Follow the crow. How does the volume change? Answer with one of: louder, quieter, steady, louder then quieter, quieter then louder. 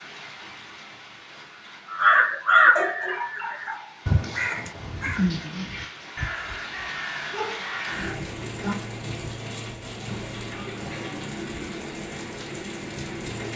quieter.